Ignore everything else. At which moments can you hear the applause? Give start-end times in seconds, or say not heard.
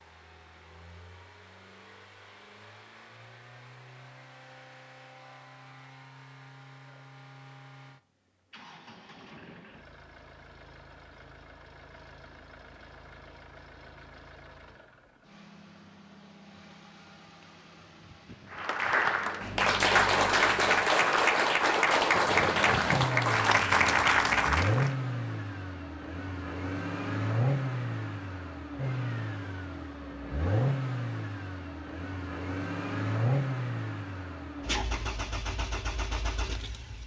18.5-24.9.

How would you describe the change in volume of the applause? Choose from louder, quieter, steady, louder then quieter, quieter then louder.
steady.